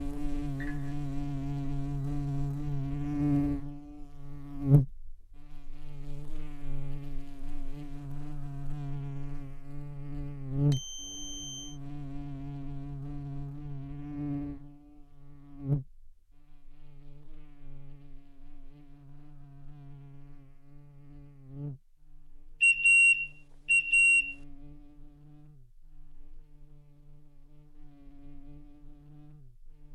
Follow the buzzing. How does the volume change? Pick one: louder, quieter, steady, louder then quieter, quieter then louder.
quieter.